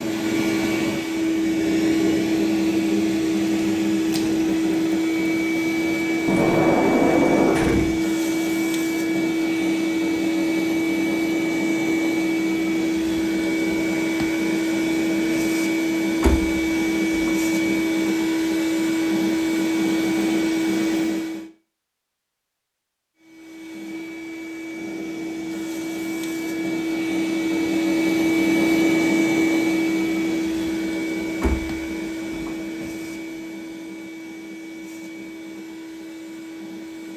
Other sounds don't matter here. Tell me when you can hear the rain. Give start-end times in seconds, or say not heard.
not heard.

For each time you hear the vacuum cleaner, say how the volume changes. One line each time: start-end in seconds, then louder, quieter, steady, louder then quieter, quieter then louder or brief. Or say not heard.
0.0-21.4 steady
23.1-37.1 louder then quieter.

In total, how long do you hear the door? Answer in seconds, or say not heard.
5 s.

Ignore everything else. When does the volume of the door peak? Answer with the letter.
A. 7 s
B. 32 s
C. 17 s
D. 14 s
A.